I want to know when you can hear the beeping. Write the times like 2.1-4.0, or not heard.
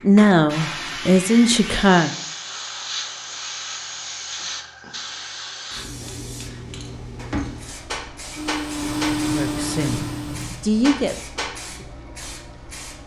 8.8-10.7.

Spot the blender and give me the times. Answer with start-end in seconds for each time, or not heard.
8.3-10.5.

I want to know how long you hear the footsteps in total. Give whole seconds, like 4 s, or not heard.
not heard.